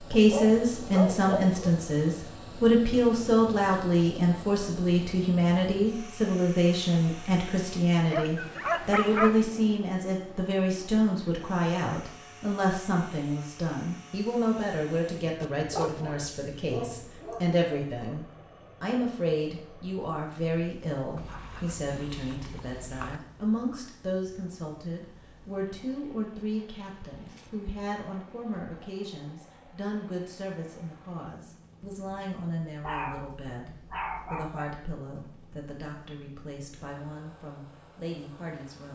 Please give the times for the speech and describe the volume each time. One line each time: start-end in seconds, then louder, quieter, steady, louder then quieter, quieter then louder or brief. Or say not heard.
0.1-38.9 quieter.